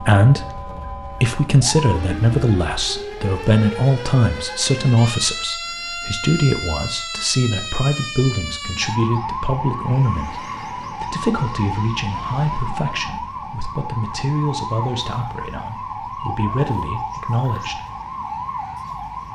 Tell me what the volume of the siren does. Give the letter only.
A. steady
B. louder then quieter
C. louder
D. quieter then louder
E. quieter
A.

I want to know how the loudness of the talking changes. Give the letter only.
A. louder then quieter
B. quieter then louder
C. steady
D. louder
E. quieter
E.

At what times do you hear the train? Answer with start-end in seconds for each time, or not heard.
not heard.